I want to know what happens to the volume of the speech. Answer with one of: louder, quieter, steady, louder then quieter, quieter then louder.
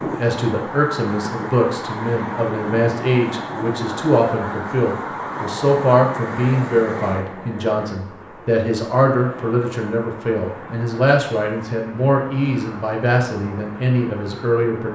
steady.